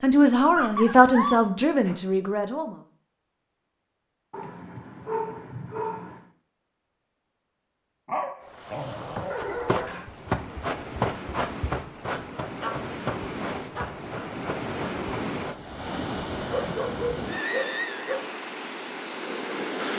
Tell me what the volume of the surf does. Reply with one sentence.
The volume of the surf goes up.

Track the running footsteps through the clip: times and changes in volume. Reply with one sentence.
The running footsteps can be heard from 9.3 to 15.6 s, getting quieter.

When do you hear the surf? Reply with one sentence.
You can hear the surf from 8.4 to 19.9 s.